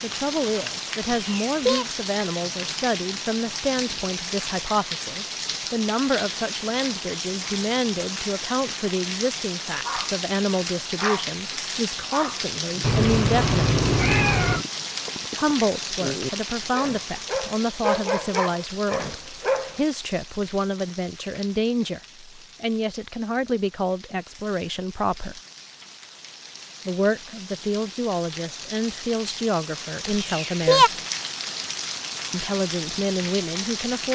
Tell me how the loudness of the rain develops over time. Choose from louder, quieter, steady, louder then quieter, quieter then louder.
quieter then louder.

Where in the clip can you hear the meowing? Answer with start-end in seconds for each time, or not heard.
1.0-1.9, 12.8-14.7, 30.1-30.9.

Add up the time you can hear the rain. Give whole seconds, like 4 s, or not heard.
34 s.